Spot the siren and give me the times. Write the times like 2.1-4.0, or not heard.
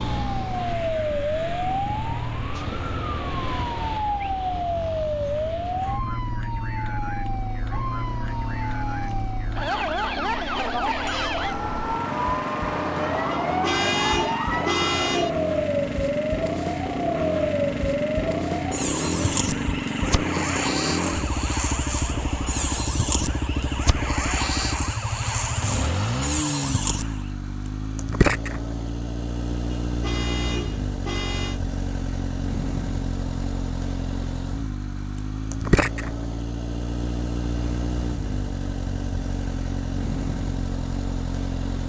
0.0-27.3.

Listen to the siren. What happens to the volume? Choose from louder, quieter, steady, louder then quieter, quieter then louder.
steady.